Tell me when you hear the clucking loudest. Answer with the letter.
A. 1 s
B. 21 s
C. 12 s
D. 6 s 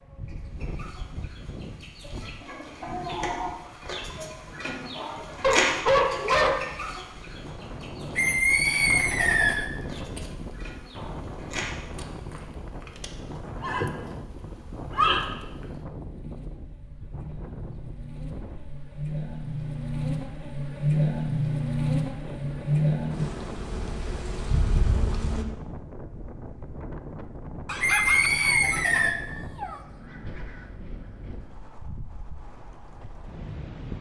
D.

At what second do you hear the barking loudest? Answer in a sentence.
The loudest moment of the barking is at 6 seconds.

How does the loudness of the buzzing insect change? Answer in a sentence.
The loudness of the buzzing insect goes up.